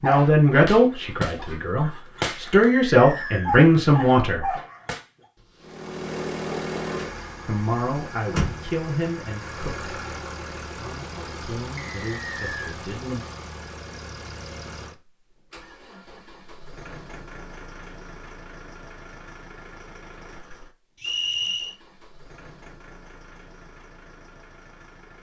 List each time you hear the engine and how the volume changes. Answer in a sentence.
You can hear the engine from 5.6 to 25.1 s, getting quieter.